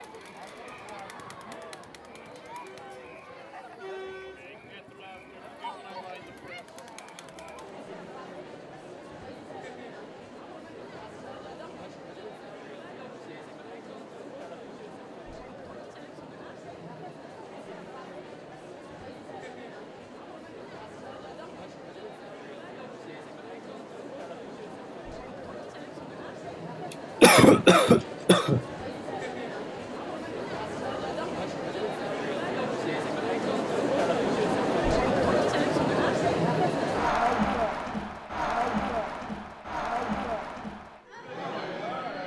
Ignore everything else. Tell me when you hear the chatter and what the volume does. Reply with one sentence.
The chatter can be heard from 0.0 to 42.2 s, getting louder.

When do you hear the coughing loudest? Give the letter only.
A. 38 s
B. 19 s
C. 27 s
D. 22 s
C.